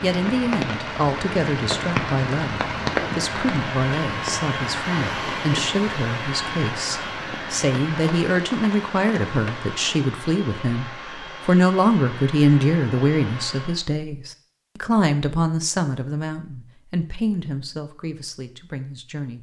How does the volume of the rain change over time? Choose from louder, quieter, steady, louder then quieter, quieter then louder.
quieter.